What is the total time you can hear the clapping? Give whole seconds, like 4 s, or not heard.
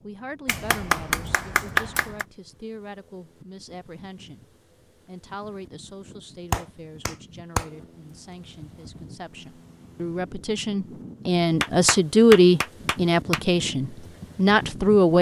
5 s.